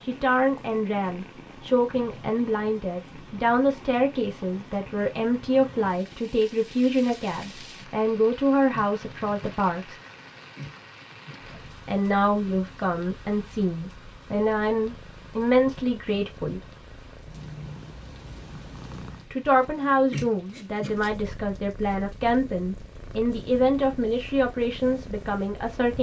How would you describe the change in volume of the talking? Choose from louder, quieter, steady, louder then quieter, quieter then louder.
steady.